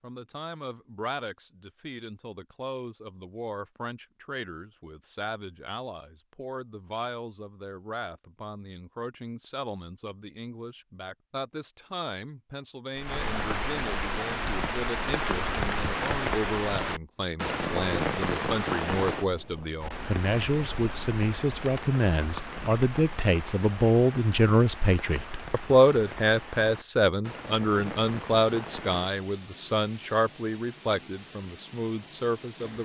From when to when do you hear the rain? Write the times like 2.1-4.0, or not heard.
12.9-32.8.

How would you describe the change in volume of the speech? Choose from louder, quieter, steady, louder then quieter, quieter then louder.
louder.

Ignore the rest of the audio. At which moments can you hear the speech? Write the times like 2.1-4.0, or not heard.
0.0-32.8.